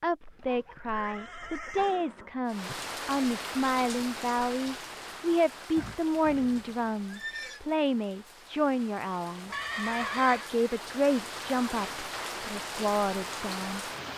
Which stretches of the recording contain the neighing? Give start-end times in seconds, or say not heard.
0.8-2.8, 5.8-7.6, 9.5-10.5.